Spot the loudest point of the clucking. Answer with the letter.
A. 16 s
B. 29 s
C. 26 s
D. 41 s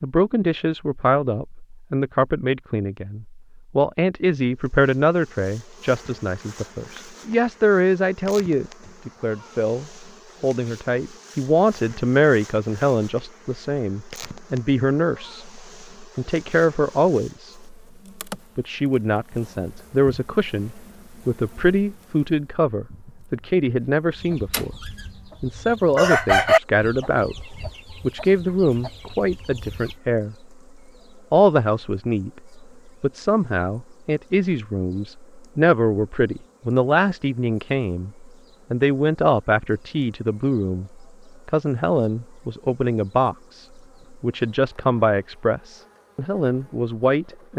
C.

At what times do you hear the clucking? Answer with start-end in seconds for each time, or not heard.
24.2-29.9.